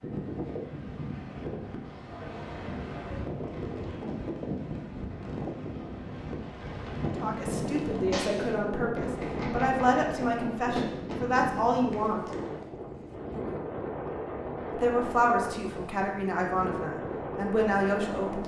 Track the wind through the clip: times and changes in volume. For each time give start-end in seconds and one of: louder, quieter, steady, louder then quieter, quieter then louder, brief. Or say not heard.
0.0-18.4 steady.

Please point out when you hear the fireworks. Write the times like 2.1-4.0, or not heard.
3.4-12.7.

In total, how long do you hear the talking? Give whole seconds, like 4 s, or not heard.
9 s.